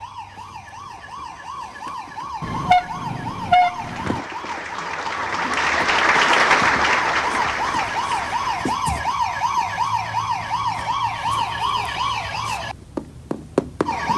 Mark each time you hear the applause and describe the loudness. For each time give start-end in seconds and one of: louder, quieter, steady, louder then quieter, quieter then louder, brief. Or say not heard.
3.7-8.8 louder then quieter.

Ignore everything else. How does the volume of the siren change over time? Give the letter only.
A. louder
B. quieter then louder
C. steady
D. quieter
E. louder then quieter
A.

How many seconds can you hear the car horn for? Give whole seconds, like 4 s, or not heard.
2 s.